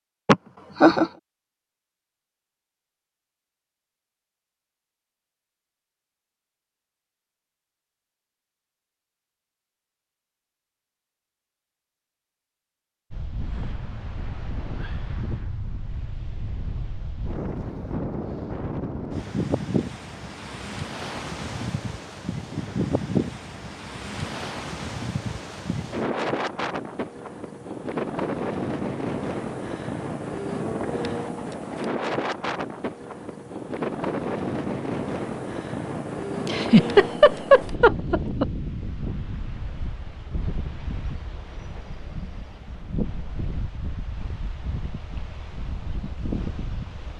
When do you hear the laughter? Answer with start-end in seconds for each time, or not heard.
0.2-1.1, 36.5-38.5.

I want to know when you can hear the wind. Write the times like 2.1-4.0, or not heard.
13.1-47.1.